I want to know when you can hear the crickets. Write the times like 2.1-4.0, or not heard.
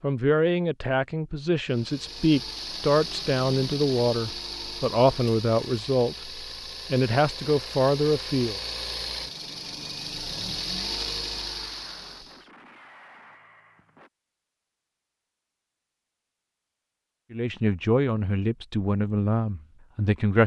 not heard.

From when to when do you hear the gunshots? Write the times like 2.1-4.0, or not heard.
11.3-14.1.